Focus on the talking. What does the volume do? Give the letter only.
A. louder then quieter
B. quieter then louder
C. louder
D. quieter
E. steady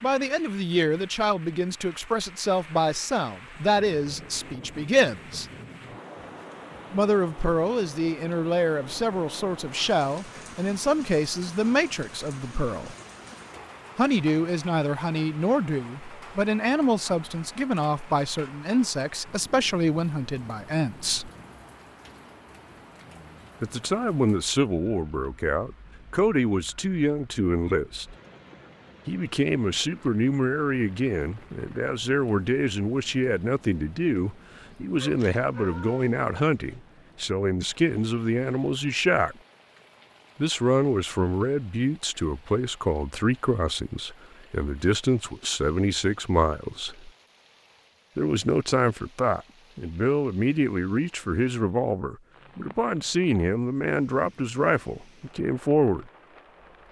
E.